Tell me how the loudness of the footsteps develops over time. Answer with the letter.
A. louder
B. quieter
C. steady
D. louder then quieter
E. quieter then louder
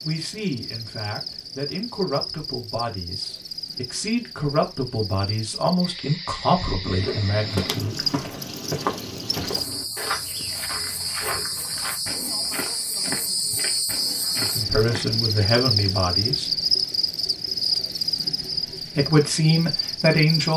B.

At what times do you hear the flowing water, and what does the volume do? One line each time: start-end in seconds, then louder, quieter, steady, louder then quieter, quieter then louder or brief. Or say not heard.
not heard.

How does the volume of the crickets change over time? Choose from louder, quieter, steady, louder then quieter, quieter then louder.
louder.